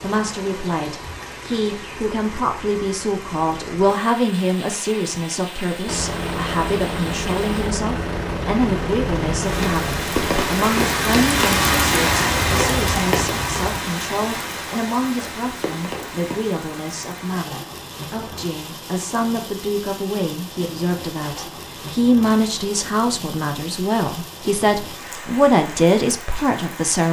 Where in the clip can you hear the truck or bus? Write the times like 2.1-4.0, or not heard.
5.8-13.8.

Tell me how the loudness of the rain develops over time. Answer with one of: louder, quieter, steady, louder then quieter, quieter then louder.
louder then quieter.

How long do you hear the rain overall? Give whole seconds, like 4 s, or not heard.
27 s.